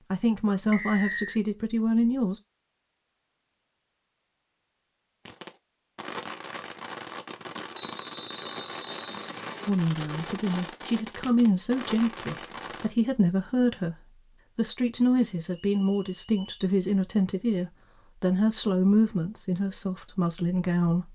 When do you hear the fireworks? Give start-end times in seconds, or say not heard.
5.2-12.9.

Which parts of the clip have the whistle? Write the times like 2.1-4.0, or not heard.
0.7-1.4, 7.7-9.7, 15.5-16.6.